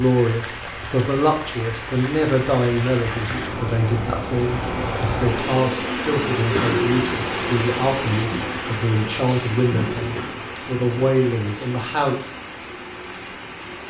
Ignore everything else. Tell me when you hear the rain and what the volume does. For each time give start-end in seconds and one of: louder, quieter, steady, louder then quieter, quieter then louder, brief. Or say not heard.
0.0-13.8 louder then quieter.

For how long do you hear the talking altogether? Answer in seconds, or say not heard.
12 s.